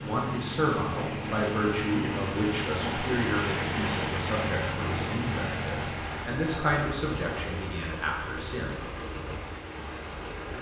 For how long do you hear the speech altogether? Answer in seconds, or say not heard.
9 s.